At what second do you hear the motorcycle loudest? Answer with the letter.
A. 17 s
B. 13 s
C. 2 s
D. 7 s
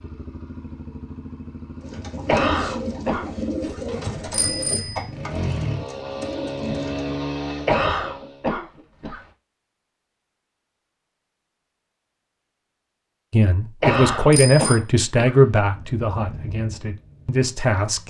D.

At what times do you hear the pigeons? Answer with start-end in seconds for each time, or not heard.
1.8-7.2.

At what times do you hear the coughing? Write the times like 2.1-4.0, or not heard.
2.2-3.8, 7.7-9.2, 13.8-15.3.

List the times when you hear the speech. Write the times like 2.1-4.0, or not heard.
13.3-18.0.